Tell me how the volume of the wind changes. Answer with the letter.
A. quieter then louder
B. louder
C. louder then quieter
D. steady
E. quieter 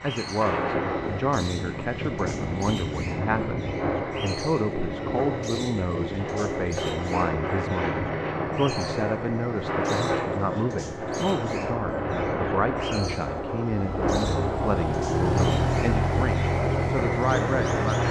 D.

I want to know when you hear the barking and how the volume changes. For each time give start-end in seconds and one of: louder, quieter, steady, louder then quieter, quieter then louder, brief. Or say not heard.
not heard.